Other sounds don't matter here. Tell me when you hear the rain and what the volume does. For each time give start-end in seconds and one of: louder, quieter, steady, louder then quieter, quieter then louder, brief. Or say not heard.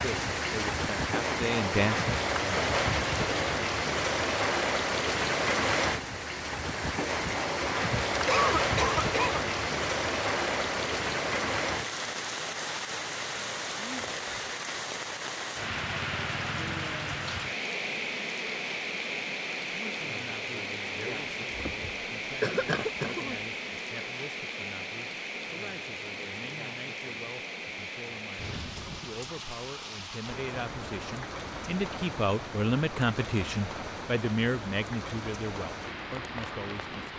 0.0-37.1 quieter.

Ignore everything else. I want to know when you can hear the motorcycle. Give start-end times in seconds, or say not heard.
not heard.